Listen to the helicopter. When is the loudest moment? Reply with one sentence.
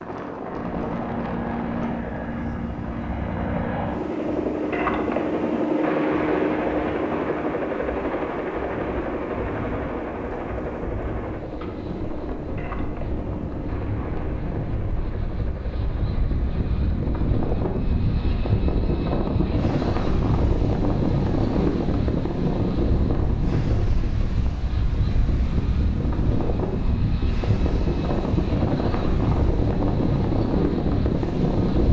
The volume of the helicopter peaks at 6 seconds.